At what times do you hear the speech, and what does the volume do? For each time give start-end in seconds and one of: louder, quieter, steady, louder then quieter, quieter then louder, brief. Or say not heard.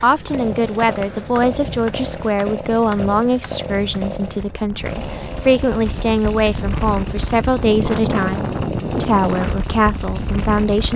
0.0-10.9 steady.